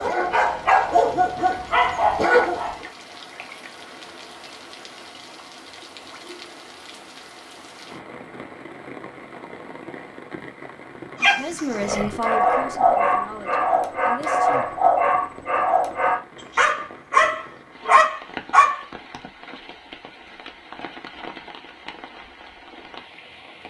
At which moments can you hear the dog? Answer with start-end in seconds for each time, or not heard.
0.0-2.9, 11.2-18.9.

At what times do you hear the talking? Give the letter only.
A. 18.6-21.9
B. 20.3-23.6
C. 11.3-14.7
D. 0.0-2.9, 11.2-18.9
C.